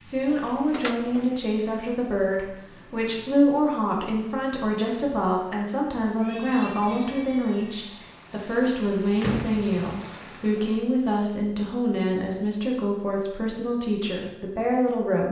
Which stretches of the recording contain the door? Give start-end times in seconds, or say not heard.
0.2-1.4, 8.0-9.8.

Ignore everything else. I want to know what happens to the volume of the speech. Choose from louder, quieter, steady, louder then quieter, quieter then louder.
steady.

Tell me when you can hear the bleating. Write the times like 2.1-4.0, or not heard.
not heard.